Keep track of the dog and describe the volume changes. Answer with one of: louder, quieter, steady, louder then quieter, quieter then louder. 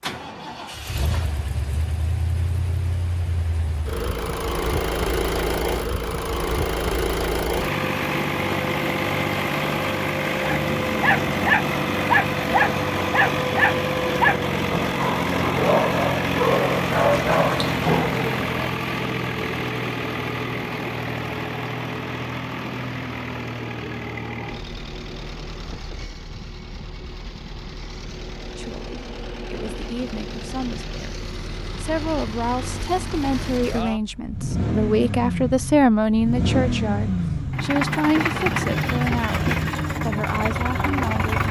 steady.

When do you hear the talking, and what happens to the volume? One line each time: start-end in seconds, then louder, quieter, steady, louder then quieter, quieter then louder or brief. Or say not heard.
28.6-41.4 louder then quieter.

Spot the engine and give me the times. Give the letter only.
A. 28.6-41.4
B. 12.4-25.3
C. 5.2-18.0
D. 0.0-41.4
D.